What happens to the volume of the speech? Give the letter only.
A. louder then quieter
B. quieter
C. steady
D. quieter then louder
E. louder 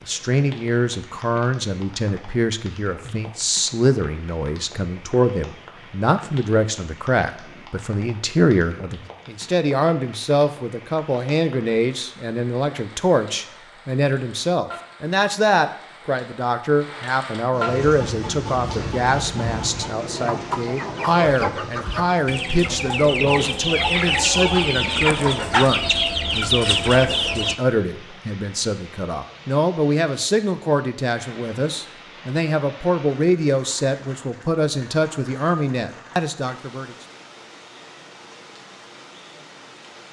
C.